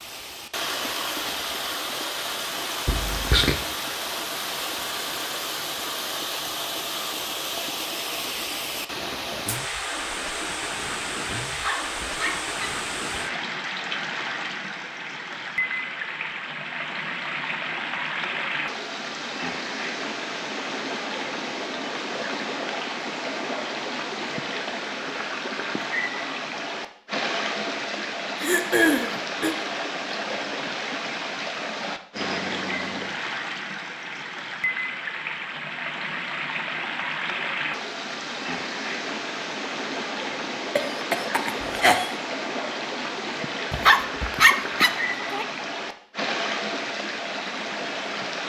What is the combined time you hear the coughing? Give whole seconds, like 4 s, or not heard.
3 s.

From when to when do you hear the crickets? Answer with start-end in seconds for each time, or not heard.
not heard.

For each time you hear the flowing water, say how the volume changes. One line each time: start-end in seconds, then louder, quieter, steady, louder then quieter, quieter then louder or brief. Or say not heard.
0.0-48.4 steady.